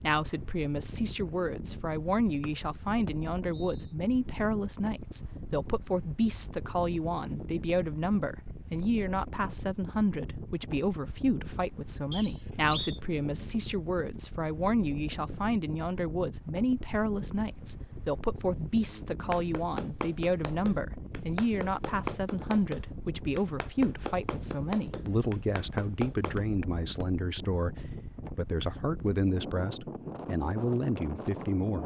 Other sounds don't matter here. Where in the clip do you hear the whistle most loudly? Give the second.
13 s.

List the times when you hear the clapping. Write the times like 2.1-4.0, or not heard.
19.3-26.4.